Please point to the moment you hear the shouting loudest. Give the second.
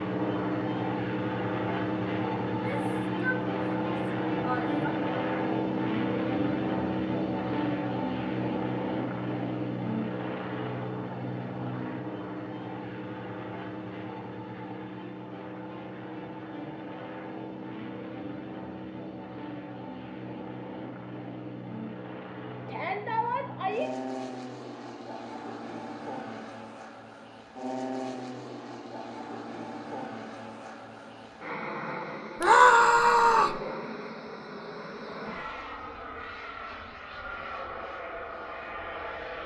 33 s.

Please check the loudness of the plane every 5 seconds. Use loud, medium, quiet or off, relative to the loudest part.
loud, loud, medium, medium, medium, medium, medium, medium.